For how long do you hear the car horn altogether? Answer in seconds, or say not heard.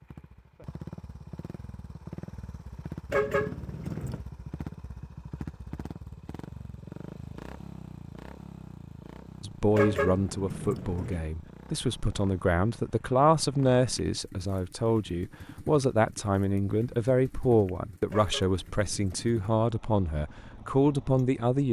4 s.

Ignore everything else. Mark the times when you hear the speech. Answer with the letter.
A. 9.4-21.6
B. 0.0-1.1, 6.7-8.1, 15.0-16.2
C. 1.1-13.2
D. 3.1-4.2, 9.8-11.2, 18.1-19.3
A.